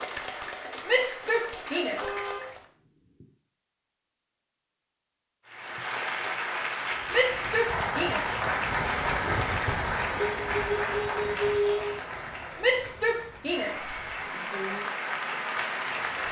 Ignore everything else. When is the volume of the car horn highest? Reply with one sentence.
The volume of the car horn peaks at 12 seconds.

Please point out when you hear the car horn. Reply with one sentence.
You can hear the car horn from 1.8 to 2.5 s and from 10.2 to 12.0 s.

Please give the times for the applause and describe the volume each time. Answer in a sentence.
The applause can be heard briefly from 0.0 to 2.6 s; and from 5.5 to 16.2 s, getting quieter then louder.